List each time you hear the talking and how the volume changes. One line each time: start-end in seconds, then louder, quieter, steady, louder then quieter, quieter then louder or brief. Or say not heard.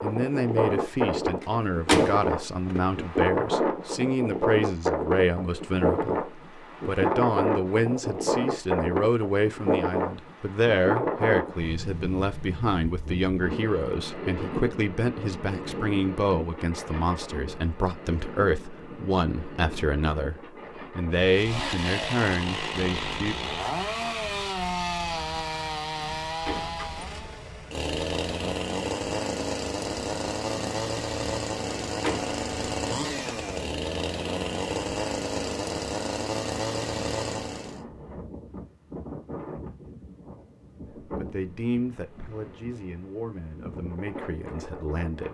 0.0-23.4 steady
41.0-45.2 quieter.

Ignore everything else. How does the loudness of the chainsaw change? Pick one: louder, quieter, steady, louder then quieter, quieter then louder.
steady.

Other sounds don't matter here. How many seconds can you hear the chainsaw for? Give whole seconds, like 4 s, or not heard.
17 s.